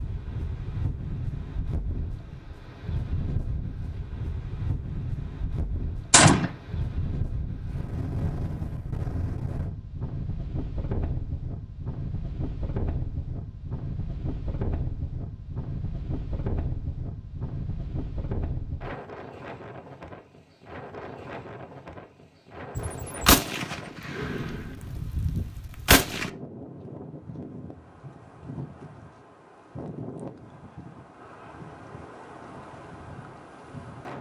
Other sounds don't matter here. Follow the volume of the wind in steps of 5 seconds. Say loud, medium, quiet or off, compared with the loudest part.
loud, loud, loud, loud, medium, medium, medium.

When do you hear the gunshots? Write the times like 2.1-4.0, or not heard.
6.1-6.5, 22.8-26.3.